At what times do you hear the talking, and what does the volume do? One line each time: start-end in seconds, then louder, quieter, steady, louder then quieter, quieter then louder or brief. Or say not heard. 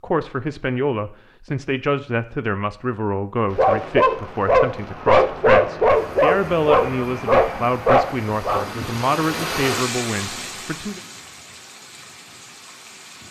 0.0-11.0 steady.